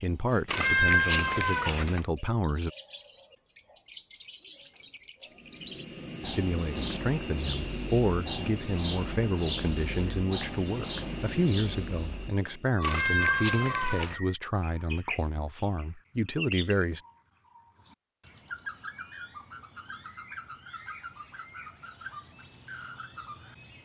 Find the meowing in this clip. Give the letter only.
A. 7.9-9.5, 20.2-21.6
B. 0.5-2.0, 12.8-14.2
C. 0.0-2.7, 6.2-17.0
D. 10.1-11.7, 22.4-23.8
B.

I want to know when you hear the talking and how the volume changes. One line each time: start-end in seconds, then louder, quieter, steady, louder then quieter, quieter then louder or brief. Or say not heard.
0.0-2.7 brief
6.2-17.0 steady.